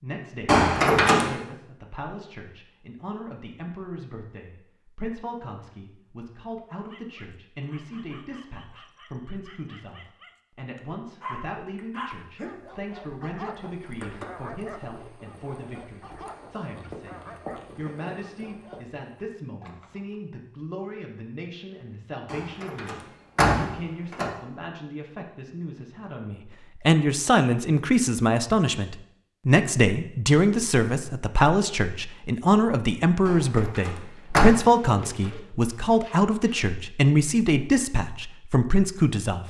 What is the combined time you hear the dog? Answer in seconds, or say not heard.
12 s.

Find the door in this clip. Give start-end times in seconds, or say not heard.
0.5-1.4, 22.2-24.3, 33.2-34.5.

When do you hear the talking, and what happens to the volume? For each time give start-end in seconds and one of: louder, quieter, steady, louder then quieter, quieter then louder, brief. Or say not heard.
0.0-39.4 louder.